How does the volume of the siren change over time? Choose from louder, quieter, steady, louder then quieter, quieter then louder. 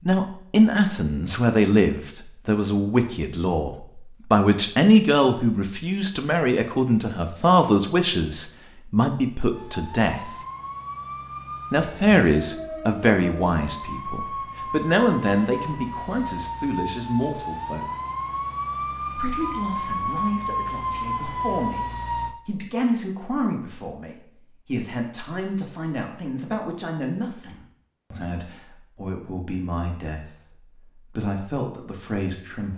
louder.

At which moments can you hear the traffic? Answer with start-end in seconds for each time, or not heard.
not heard.